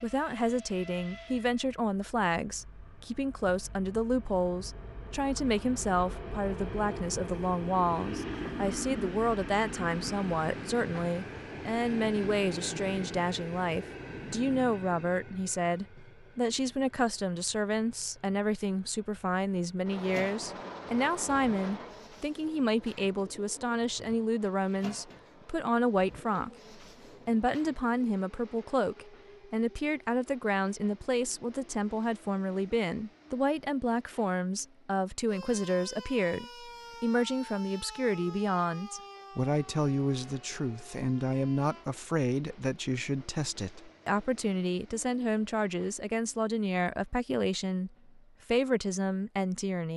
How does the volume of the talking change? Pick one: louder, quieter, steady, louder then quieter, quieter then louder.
steady.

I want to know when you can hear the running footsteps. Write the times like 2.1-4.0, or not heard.
not heard.